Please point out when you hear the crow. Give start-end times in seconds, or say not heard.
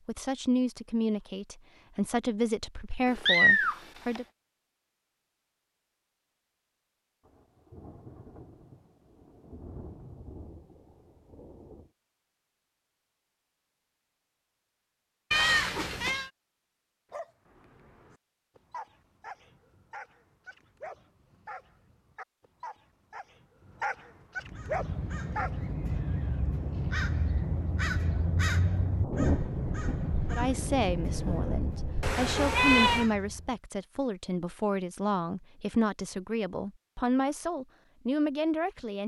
24.4-33.6.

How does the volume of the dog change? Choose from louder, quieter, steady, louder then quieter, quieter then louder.
louder.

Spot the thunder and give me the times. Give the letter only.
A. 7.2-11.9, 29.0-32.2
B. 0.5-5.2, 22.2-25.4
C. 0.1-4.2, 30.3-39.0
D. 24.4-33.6
A.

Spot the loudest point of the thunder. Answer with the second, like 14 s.
29 s.